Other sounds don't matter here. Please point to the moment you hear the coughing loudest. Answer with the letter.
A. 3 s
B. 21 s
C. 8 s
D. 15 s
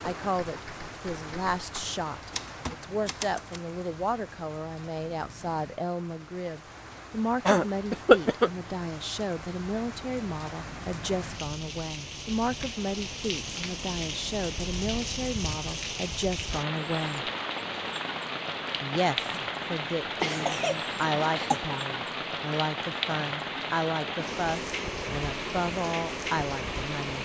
C.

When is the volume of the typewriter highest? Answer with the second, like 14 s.
3 s.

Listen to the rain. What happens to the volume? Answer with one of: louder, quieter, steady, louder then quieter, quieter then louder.
louder.